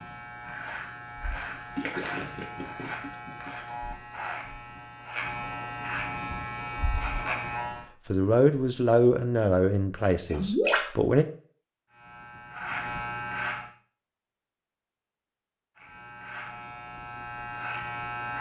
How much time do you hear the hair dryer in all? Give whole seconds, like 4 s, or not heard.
not heard.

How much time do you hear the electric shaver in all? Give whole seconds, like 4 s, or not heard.
12 s.